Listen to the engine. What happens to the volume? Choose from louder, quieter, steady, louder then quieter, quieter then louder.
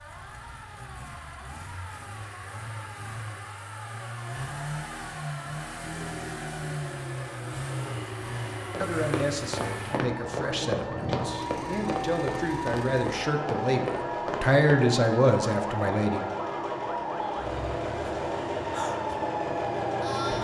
louder.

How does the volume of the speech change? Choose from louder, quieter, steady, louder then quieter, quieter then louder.
louder.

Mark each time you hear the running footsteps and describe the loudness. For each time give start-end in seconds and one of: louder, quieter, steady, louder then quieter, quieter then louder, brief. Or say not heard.
8.7-14.8 steady.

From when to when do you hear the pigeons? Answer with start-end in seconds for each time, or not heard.
not heard.